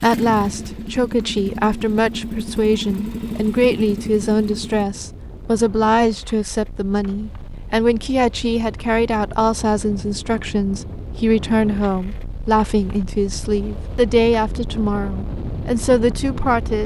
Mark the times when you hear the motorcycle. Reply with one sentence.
You can hear the motorcycle from 0.0 to 4.8 s.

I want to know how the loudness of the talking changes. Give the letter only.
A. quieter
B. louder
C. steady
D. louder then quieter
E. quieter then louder
C.